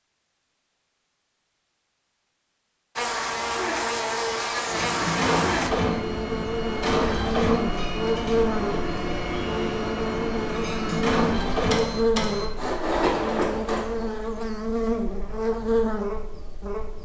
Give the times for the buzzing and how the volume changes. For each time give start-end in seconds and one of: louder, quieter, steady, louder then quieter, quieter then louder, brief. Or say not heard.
3.0-17.0 steady.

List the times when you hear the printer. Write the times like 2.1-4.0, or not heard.
4.7-14.1.